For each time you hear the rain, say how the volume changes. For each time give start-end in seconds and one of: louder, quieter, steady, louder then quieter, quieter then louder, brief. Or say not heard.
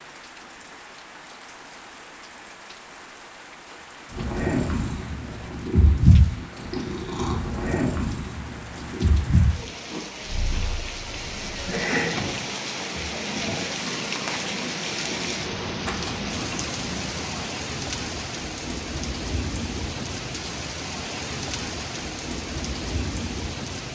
0.0-23.9 louder.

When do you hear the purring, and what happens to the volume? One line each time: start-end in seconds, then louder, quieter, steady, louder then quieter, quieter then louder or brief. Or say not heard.
4.1-17.4 quieter.